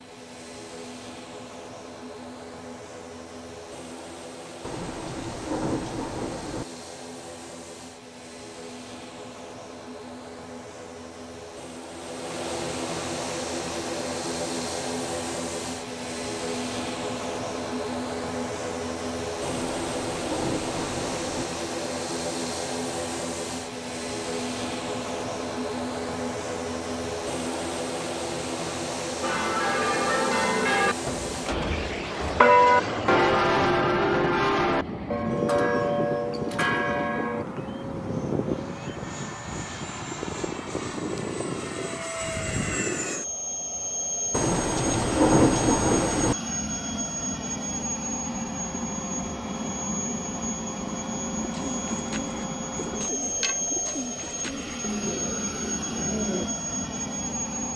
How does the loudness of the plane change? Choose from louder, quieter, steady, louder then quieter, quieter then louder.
louder.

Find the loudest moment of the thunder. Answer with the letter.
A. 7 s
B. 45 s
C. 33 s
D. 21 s
B.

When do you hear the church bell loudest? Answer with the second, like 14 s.
33 s.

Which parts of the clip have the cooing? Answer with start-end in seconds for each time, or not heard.
51.4-56.5.